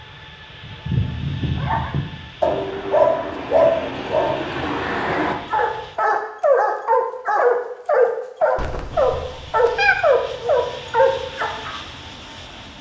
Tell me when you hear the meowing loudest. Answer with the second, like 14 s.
10 s.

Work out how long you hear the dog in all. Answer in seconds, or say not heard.
11 s.